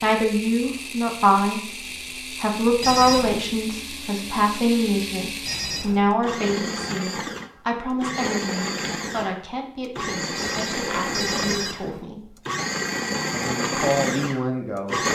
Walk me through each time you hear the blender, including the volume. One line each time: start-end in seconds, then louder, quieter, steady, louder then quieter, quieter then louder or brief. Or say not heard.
0.0-15.1 louder.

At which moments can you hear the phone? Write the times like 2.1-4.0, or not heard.
2.8-3.5, 5.5-6.1, 10.3-12.1.